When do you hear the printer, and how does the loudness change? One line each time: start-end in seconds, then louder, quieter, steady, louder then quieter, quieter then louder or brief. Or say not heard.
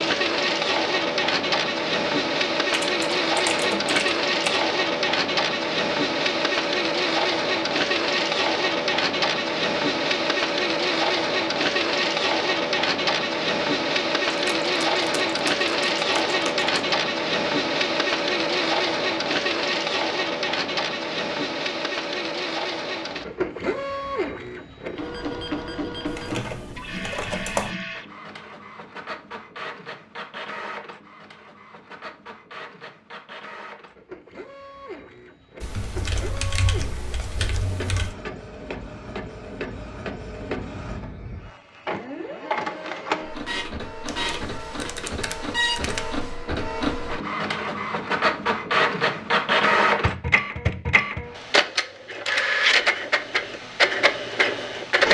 0.0-55.1 quieter then louder.